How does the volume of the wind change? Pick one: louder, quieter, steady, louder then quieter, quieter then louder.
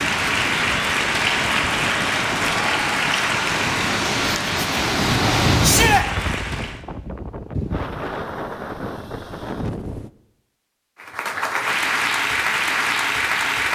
louder then quieter.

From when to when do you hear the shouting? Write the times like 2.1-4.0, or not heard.
5.6-6.0.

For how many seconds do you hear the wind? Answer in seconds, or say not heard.
10 s.